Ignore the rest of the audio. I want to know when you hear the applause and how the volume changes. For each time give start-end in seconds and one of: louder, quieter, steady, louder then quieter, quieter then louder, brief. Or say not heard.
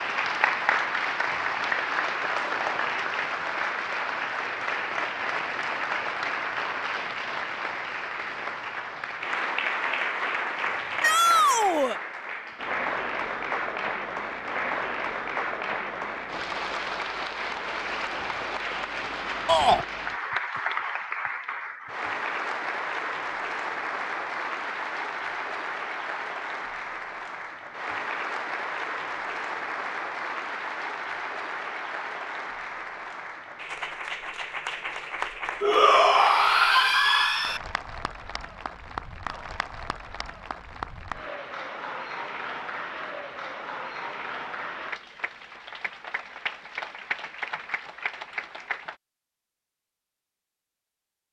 0.0-49.0 quieter.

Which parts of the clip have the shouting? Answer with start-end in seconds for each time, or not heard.
11.0-12.0, 19.4-19.9, 35.6-37.6.